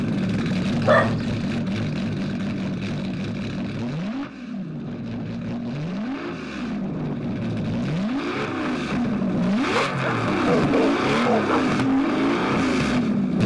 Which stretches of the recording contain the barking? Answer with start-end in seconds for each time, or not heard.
0.8-1.6, 9.8-11.7.